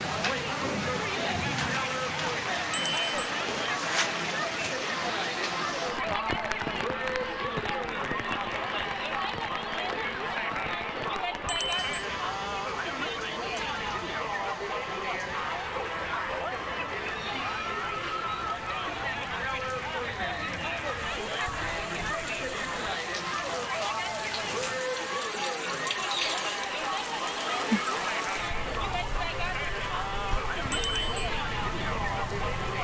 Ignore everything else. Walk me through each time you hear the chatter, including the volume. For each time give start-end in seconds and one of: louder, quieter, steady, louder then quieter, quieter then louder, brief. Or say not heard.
0.0-32.7 steady.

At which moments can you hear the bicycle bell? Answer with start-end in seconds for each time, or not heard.
2.7-3.2, 11.4-12.1, 30.7-31.2.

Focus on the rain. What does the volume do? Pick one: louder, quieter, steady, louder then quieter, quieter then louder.
quieter then louder.